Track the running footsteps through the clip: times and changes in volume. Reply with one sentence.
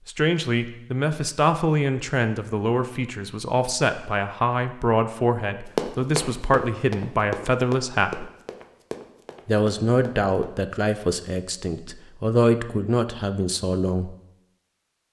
The running footsteps can be heard from 5.8 to 10.6 s, getting quieter.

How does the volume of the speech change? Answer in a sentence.
The volume of the speech stays about the same.